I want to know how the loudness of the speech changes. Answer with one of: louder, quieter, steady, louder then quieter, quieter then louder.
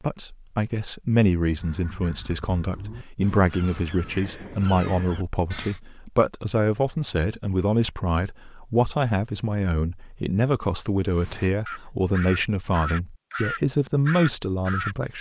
steady.